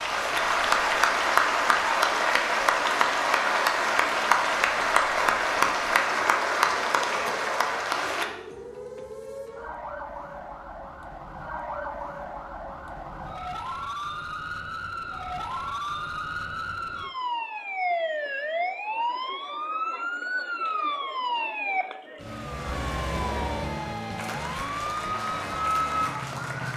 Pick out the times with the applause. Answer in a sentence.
The applause can be heard from 0.0 to 8.3 s and from 24.1 to 26.7 s.